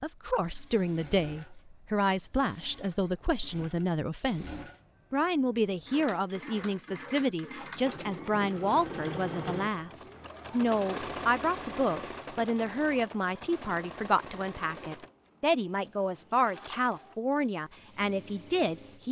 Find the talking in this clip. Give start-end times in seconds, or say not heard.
0.0-19.0.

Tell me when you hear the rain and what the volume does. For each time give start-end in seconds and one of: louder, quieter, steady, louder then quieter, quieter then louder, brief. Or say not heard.
not heard.